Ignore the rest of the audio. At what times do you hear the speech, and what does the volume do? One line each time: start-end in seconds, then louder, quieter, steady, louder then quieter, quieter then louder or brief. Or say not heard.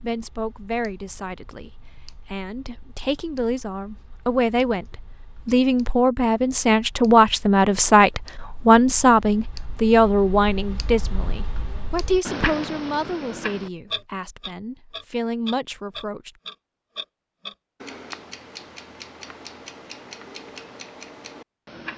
0.0-16.3 louder then quieter.